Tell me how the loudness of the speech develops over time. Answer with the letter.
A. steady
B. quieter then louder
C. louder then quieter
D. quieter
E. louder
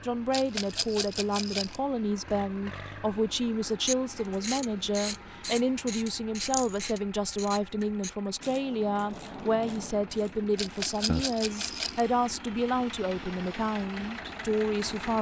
A.